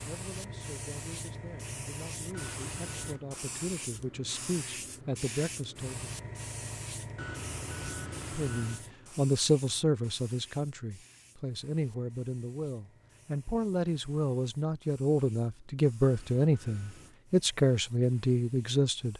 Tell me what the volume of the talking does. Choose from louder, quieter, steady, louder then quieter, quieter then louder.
louder.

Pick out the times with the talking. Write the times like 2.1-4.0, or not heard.
0.0-6.1, 8.3-19.1.